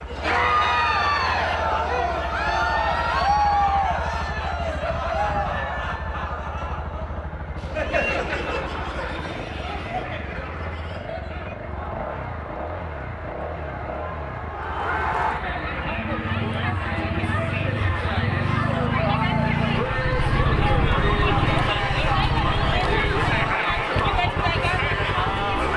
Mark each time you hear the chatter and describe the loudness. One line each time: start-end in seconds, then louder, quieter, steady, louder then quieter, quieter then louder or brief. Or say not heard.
0.1-25.7 quieter then louder.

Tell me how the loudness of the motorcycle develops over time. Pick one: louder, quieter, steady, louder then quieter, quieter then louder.
louder.